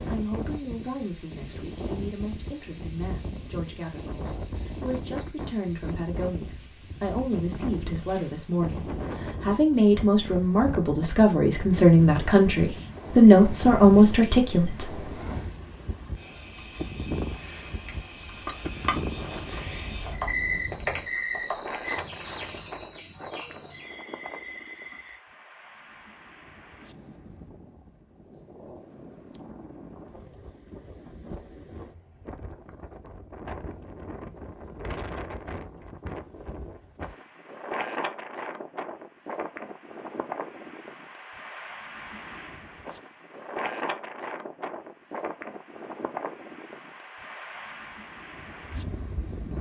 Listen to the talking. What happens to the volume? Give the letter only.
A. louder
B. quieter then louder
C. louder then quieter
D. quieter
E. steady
A.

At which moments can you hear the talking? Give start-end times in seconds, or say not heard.
0.0-15.1.